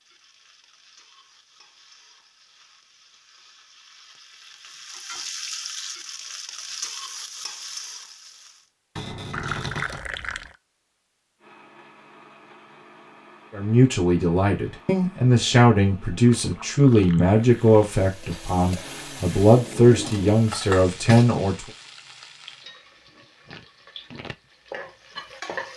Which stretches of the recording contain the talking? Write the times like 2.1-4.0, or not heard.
13.5-21.7.